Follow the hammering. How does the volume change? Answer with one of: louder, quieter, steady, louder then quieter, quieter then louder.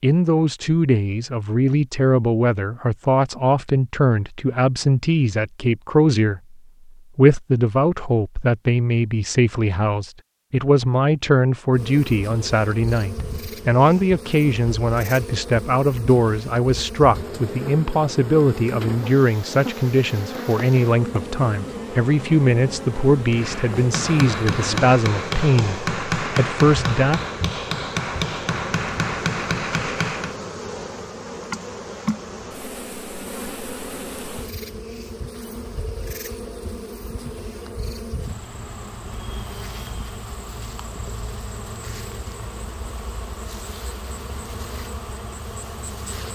steady.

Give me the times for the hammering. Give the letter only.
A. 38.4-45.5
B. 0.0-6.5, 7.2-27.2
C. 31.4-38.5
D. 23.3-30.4
D.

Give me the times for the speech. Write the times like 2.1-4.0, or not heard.
0.0-6.5, 7.2-27.2.